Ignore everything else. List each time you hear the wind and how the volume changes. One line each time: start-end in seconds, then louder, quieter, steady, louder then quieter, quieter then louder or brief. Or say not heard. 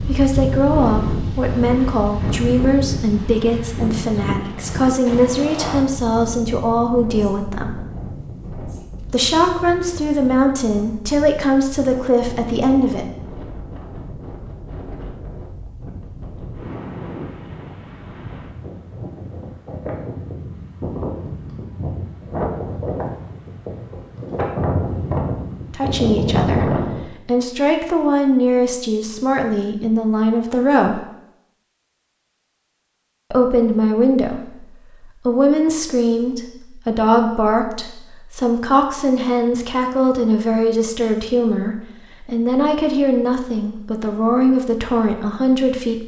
0.0-27.0 quieter then louder.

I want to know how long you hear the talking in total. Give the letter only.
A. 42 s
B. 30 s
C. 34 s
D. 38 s
B.